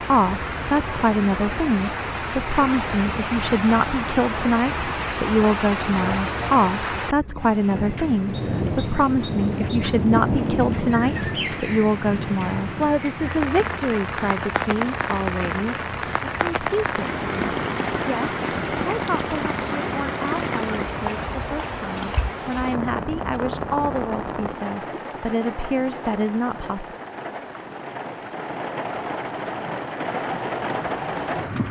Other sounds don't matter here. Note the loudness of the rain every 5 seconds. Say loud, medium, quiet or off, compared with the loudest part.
loud, loud, loud, loud, loud, medium, loud.